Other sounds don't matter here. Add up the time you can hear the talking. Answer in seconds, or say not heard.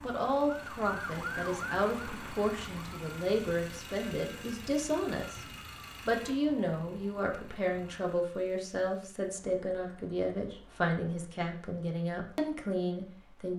13 s.